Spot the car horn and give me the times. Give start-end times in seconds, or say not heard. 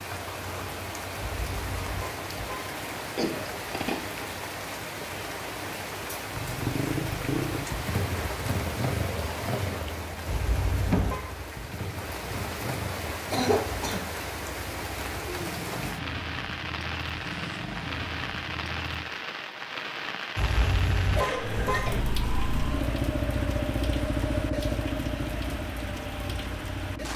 1.1-2.7, 10.2-11.2, 20.4-21.9.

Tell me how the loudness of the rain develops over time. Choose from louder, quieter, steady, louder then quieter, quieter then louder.
steady.